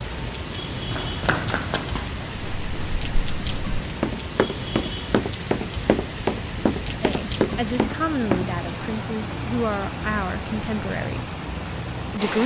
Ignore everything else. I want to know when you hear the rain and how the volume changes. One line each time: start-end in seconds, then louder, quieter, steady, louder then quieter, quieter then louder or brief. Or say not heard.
0.0-12.4 steady.